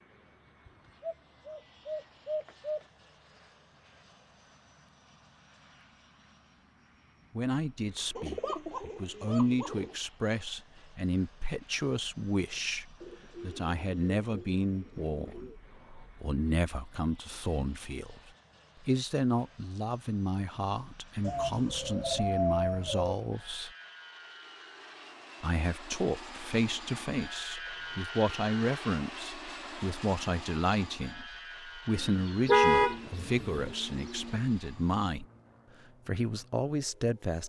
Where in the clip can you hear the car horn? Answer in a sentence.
The car horn can be heard from 32.5 to 33.6 s.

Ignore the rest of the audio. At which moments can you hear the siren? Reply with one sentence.
You can't hear the siren here.